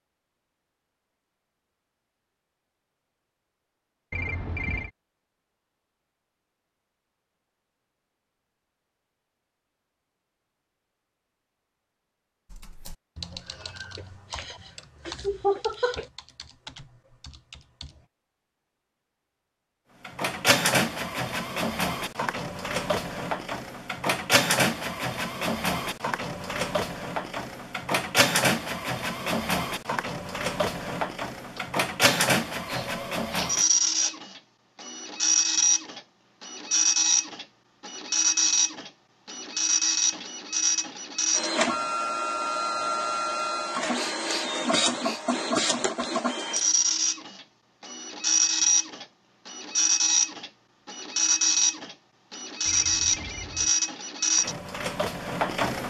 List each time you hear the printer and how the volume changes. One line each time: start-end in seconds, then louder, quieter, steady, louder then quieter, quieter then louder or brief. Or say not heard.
20.1-55.8 steady.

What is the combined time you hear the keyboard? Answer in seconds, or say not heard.
6 s.